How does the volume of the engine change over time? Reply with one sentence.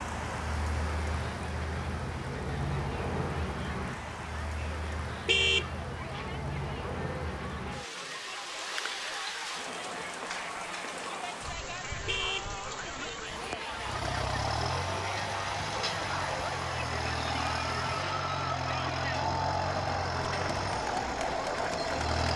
The volume of the engine stays about the same.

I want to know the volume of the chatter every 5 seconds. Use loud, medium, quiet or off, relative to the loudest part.
quiet, medium, medium, loud, loud.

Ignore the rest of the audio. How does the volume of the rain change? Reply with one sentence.
The volume of the rain goes down.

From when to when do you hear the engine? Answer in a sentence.
You can hear the engine from 13.6 to 22.3 s.